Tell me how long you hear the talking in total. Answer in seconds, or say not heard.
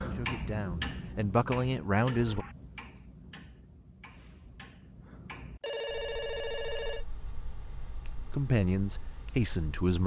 4 s.